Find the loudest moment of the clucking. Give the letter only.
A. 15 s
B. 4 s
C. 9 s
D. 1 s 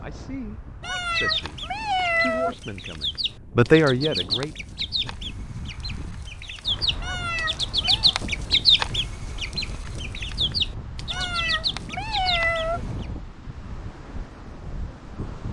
C.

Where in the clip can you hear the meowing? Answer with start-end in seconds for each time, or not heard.
0.8-2.5, 7.0-8.1, 11.1-12.8.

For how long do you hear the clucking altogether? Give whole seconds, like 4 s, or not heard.
12 s.